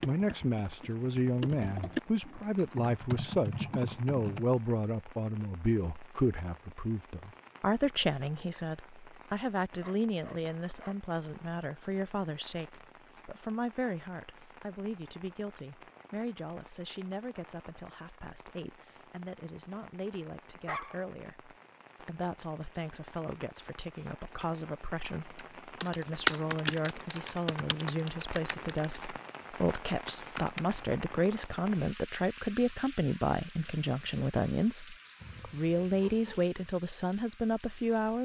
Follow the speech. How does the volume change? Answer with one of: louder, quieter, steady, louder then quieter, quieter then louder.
quieter then louder.